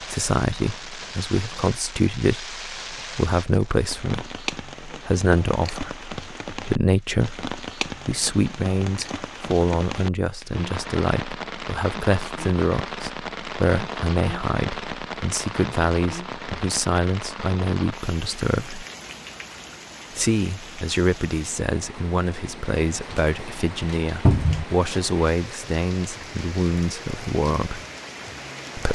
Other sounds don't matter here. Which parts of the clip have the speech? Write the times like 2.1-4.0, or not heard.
0.0-18.9, 20.1-27.8.